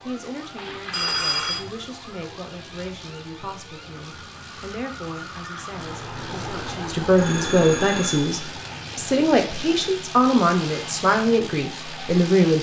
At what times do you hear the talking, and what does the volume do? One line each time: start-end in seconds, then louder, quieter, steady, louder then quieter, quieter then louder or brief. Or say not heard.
0.1-12.5 louder.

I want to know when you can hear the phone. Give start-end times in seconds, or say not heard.
0.6-1.6, 7.2-8.8.